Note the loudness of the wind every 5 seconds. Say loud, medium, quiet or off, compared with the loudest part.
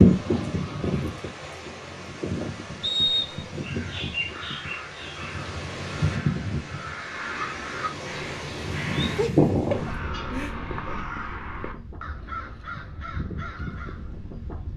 loud, loud, quiet.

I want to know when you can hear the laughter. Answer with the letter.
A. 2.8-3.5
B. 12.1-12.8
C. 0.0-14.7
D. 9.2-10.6
D.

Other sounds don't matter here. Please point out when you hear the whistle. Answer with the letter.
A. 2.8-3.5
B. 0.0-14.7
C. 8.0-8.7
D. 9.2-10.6
A.